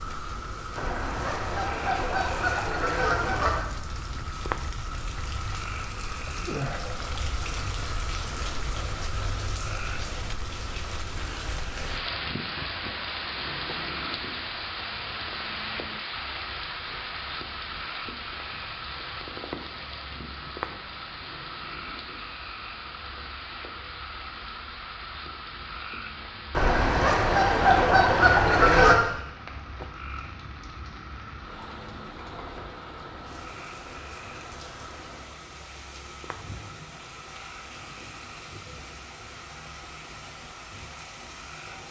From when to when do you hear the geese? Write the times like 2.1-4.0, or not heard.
0.8-3.7, 26.5-29.0.